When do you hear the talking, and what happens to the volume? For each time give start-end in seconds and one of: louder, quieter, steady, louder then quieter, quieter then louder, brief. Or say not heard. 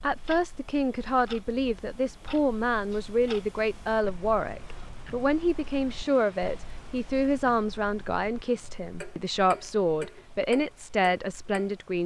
0.0-12.0 steady.